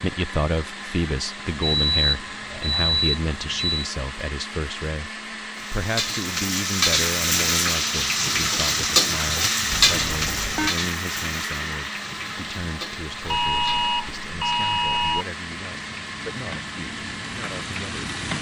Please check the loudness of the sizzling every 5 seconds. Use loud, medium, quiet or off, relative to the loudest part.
off, loud, medium, quiet.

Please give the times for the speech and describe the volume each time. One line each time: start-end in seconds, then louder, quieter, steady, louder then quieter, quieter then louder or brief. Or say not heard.
0.0-18.1 quieter.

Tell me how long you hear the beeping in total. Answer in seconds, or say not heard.
5 s.